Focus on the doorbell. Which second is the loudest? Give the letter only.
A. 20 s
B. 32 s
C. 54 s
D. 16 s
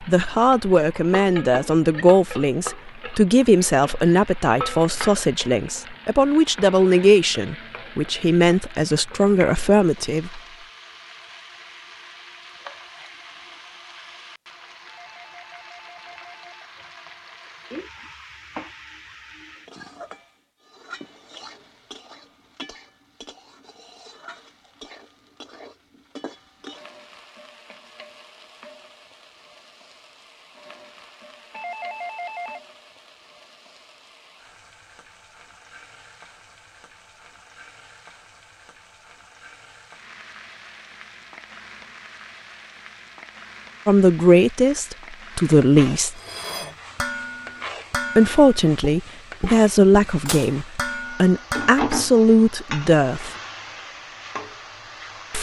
B.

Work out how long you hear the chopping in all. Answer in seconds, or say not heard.
not heard.